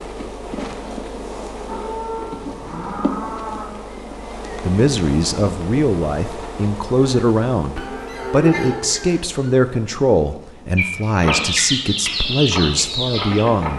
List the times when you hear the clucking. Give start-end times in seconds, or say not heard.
10.8-13.7.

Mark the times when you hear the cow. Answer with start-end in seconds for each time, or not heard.
1.6-3.8, 7.8-9.2.